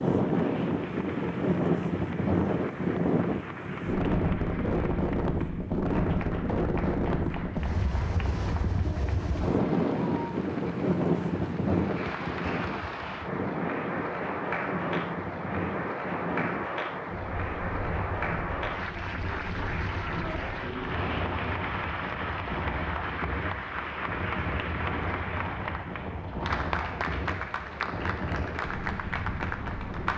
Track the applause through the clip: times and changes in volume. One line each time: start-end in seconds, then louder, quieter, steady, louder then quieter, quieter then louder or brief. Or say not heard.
0.0-30.1 louder.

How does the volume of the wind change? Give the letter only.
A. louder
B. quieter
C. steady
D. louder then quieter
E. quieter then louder
B.